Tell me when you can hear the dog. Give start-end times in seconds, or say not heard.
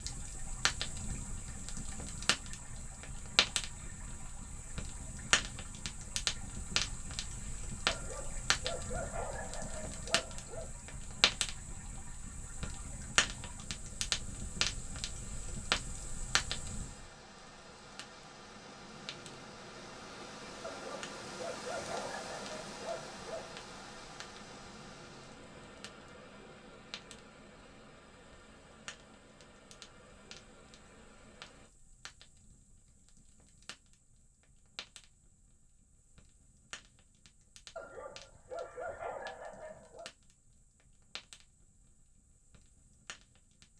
7.8-10.7, 20.6-23.5, 37.8-40.1.